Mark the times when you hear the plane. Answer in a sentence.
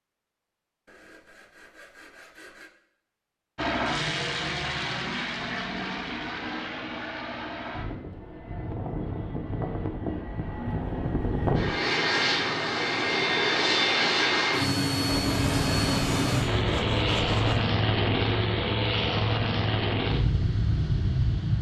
The plane can be heard from 3.5 to 21.5 s.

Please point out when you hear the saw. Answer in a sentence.
The saw can be heard from 0.8 to 2.7 s and from 15.1 to 17.6 s.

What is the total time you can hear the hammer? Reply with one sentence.
The hammer can't be heard in this clip.